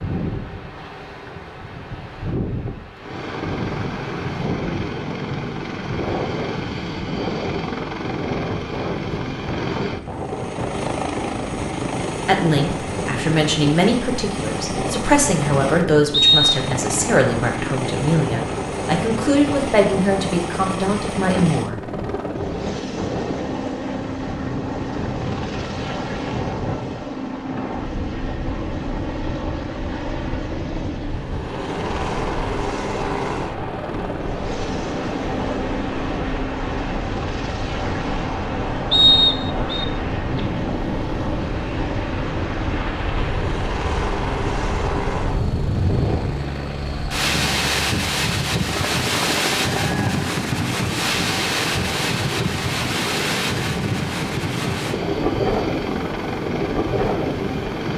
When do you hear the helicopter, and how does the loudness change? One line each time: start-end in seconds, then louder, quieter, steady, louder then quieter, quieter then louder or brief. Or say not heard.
3.0-57.9 steady.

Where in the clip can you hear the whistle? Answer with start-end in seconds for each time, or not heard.
16.1-16.6, 38.9-39.9.